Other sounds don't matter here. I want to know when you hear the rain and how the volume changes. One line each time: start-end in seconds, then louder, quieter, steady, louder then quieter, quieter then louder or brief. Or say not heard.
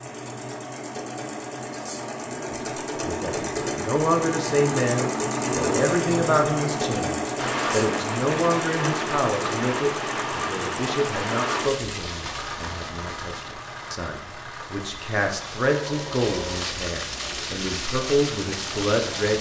7.3-19.3 quieter then louder.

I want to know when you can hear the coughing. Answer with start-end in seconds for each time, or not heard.
not heard.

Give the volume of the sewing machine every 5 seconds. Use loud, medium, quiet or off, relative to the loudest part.
loud, loud, medium, medium.